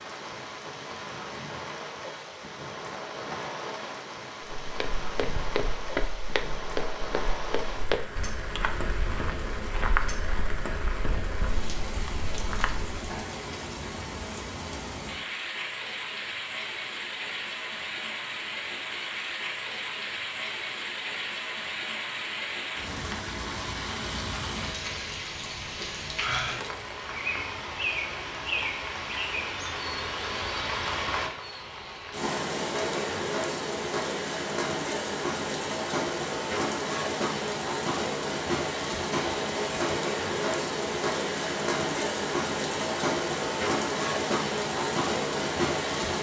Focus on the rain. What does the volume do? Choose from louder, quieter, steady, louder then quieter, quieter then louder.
louder.